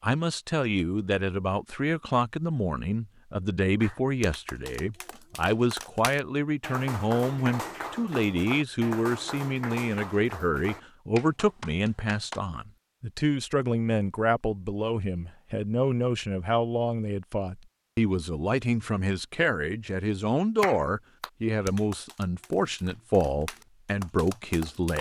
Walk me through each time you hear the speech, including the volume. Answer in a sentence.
The speech can be heard from 0.0 to 24.9 s, at a steady volume.